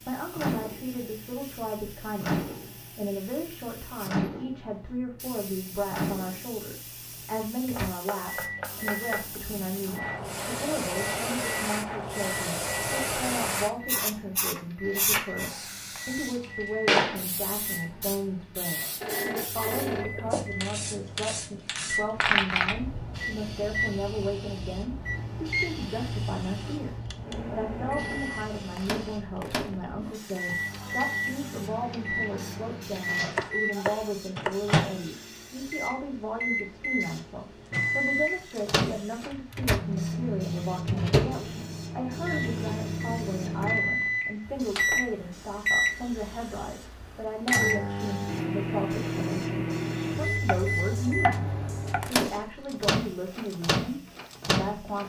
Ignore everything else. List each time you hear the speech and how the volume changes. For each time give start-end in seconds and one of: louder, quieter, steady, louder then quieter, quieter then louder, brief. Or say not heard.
0.0-55.0 steady.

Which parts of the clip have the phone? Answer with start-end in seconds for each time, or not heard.
19.0-20.5.